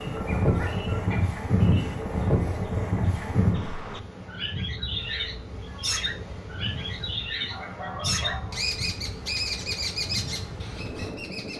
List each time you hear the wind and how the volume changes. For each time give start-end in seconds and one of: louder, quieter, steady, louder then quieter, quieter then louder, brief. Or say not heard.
0.0-11.5 quieter.